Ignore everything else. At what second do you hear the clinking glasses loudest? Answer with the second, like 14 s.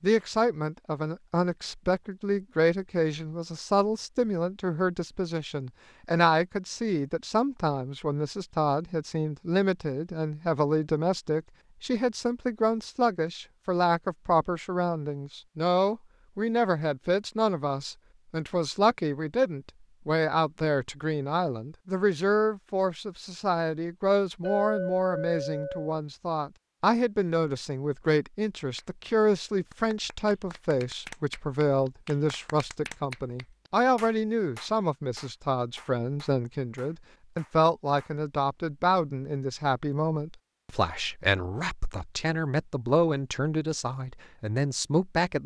25 s.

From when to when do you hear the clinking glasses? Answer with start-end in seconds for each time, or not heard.
24.4-25.9.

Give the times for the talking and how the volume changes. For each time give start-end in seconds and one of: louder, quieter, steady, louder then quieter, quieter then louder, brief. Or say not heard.
0.0-45.4 steady.